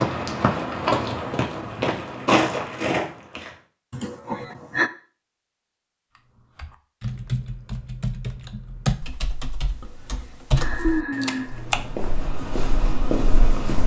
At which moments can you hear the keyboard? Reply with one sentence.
You can hear the keyboard from 6.2 to 11.9 s.